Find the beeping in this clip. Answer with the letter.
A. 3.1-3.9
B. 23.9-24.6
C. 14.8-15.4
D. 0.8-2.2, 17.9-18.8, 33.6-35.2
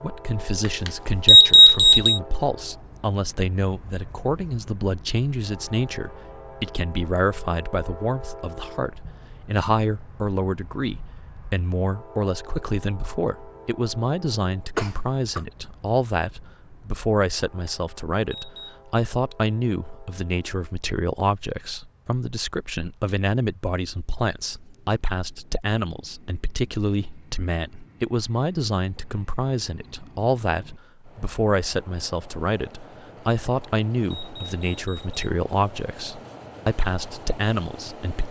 D.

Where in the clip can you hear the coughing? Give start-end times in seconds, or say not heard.
14.8-15.4.